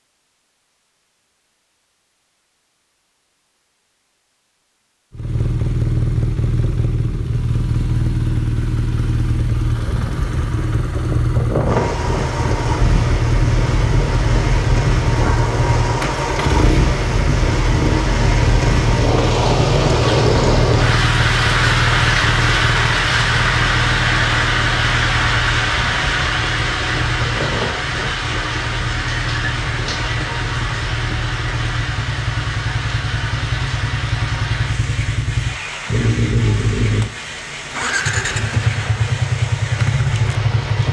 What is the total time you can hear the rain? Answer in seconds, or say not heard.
29 s.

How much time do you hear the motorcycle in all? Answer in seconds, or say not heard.
36 s.